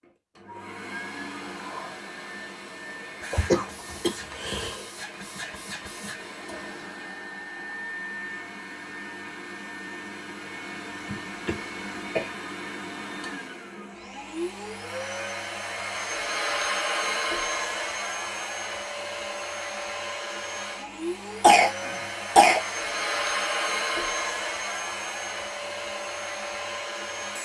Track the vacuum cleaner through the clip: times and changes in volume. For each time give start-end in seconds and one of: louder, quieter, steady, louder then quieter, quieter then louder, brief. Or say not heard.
0.0-27.4 louder.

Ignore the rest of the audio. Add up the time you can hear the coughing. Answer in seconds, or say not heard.
4 s.